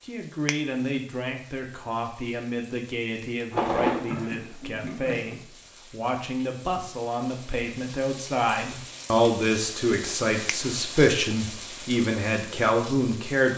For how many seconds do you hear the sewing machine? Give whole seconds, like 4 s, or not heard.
2 s.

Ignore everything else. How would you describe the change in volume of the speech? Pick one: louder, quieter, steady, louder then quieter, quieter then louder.
louder.